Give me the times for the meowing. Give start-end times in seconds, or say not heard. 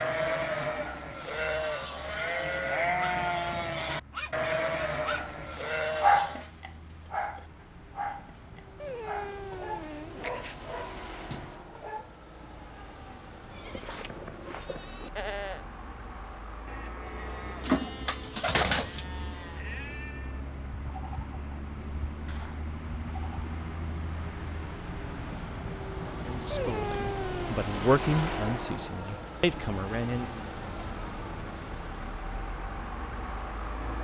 8.8-10.6, 26.5-27.6.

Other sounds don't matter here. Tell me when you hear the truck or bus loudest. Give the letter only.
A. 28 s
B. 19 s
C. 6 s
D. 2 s
A.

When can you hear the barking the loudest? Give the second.
6 s.